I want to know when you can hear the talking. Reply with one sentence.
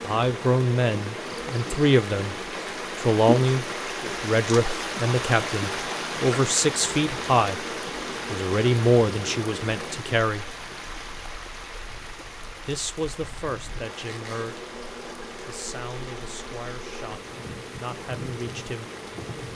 The talking can be heard from 0.0 to 2.4 s, from 3.0 to 7.7 s, from 8.3 to 10.5 s, from 12.7 to 14.7 s and from 15.4 to 18.9 s.